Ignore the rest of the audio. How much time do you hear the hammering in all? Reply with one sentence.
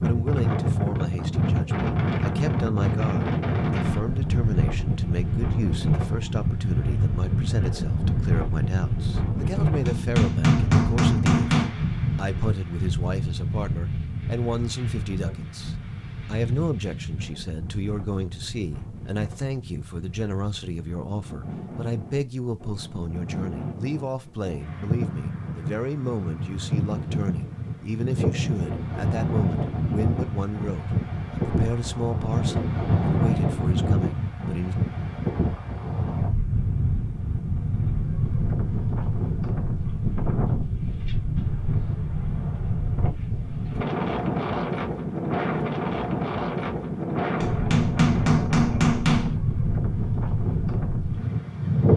The hammering can be heard for 4 seconds in total.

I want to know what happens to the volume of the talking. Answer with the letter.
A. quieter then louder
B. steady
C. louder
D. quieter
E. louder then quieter
B.